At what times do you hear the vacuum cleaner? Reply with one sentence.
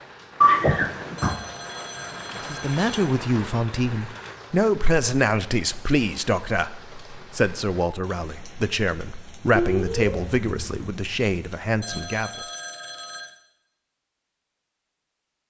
The vacuum cleaner can't be heard in this clip.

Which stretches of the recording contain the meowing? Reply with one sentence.
You can hear the meowing from 0.4 to 1.4 s and from 9.6 to 10.9 s.